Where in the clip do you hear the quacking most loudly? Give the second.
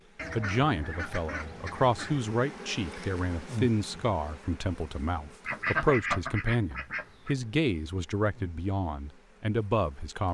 6 s.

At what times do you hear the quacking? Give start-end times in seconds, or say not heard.
0.1-2.2, 5.5-7.3.